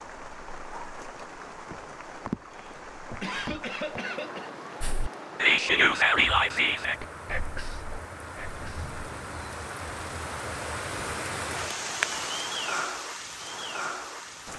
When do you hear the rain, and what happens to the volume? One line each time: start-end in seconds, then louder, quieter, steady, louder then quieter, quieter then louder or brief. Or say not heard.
0.0-14.5 louder.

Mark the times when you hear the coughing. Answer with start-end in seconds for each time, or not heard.
2.5-4.5.